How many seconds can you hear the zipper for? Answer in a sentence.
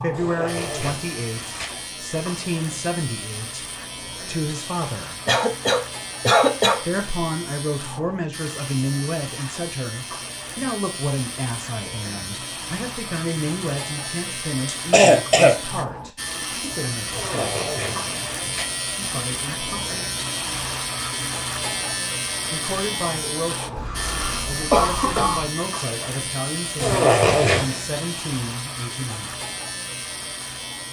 The zipper can be heard for 4 seconds in total.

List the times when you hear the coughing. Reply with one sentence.
You can hear the coughing from 5.2 to 6.8 s, from 14.7 to 15.6 s and from 23.8 to 25.5 s.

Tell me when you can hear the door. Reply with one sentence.
You can't hear the door here.